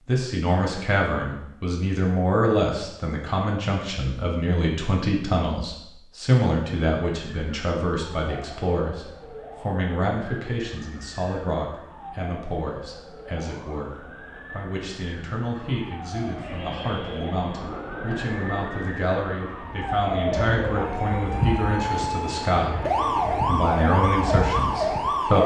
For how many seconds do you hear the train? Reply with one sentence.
You can hear the train for 9 seconds altogether.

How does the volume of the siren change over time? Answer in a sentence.
The volume of the siren goes up.